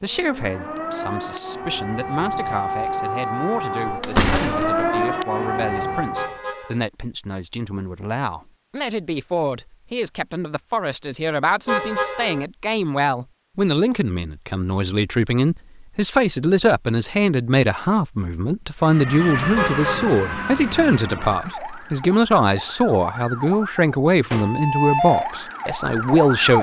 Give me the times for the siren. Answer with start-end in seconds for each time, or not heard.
0.0-6.4, 18.8-26.5.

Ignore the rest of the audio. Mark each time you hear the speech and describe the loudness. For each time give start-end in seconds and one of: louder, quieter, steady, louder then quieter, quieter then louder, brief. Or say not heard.
0.0-26.5 louder.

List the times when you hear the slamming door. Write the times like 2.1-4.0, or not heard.
3.9-4.9.